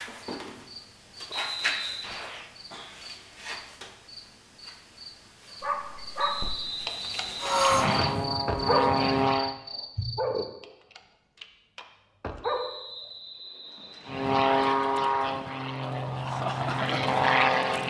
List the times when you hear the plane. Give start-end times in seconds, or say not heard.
7.4-9.6, 14.1-17.8.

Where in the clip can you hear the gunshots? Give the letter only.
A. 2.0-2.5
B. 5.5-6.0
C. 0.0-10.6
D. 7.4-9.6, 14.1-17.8
A.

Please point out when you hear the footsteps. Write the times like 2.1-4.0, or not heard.
not heard.